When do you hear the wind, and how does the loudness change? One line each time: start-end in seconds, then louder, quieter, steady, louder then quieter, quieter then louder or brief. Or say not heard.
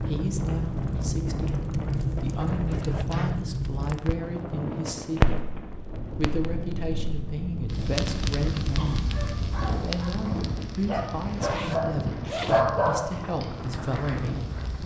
0.0-14.8 steady.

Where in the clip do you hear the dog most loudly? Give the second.
13 s.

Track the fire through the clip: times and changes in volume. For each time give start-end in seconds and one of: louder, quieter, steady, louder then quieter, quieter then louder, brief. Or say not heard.
0.0-14.8 quieter.